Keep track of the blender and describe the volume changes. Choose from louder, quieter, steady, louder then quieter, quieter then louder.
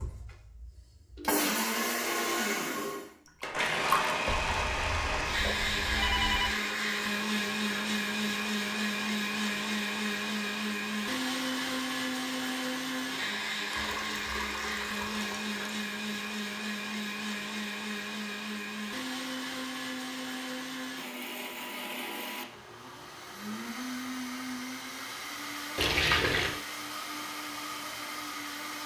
quieter.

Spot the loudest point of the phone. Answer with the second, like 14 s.
6 s.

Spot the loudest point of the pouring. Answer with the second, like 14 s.
26 s.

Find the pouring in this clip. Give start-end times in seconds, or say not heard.
3.4-4.2, 13.7-15.8, 25.8-26.6.